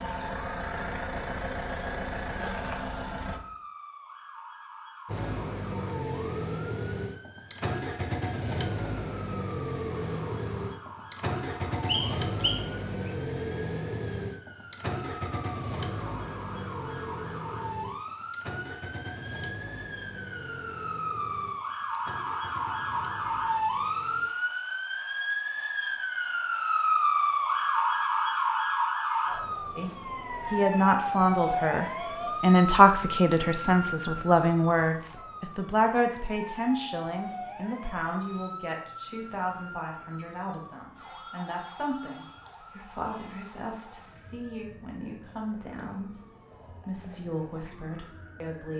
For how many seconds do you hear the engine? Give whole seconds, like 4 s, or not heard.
23 s.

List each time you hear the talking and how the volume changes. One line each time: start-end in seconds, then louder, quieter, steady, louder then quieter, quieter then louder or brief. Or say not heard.
29.8-46.1 quieter
46.9-48.7 brief.